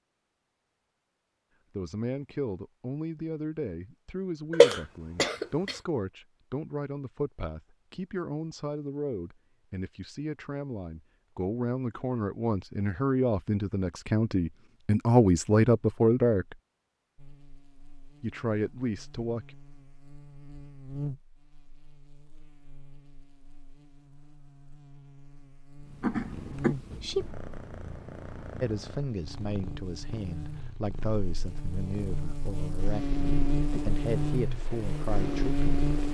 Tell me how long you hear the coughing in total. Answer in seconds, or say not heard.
2 s.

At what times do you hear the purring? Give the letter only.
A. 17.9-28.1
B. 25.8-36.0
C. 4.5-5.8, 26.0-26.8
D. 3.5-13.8
B.